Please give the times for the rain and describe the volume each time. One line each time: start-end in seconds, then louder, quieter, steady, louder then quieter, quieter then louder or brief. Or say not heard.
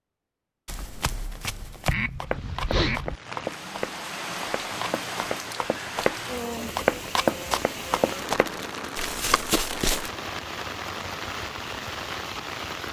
3.0-12.8 steady.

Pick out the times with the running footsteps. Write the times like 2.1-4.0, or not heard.
0.7-10.1.